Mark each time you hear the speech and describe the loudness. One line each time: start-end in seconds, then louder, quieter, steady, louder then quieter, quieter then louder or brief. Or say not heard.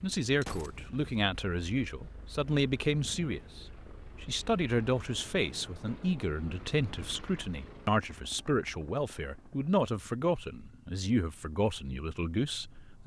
0.0-13.0 steady.